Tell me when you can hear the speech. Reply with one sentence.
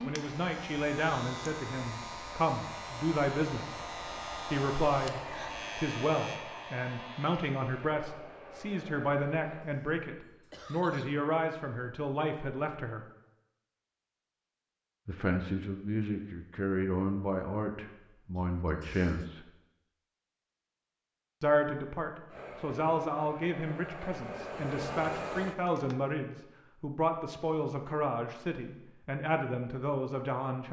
The speech can be heard from 0.0 to 3.8 s, from 4.5 to 13.1 s, from 15.1 to 19.5 s and from 21.4 to 30.6 s.